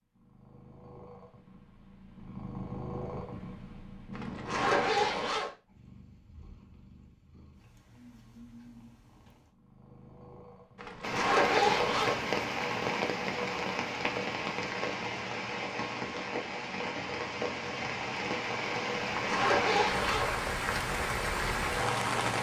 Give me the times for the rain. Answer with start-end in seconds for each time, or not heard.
11.0-22.3.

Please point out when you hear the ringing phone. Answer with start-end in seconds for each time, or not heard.
not heard.